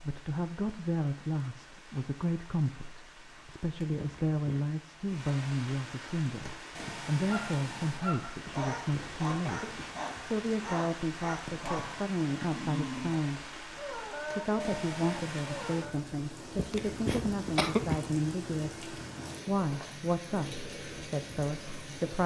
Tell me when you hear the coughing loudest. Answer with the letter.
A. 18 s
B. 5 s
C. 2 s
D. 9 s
A.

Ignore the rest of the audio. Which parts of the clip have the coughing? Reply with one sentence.
You can hear the coughing from 4.0 to 4.6 s, from 8.4 to 10.3 s and from 16.6 to 18.1 s.